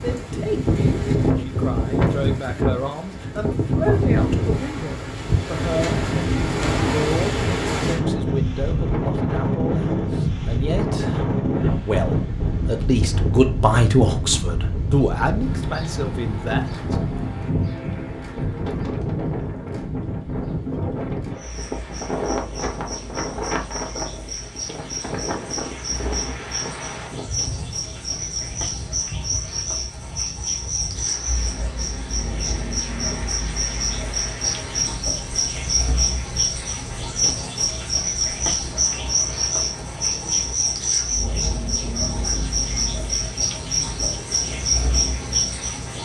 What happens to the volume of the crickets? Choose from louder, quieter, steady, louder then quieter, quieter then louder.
louder.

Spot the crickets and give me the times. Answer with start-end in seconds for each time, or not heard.
21.4-45.9.